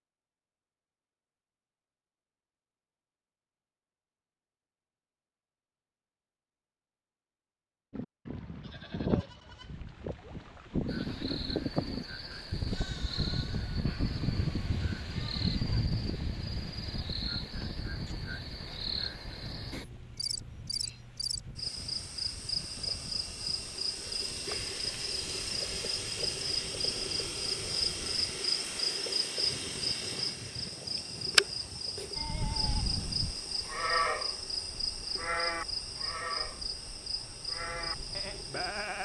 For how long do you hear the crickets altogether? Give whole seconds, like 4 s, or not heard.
28 s.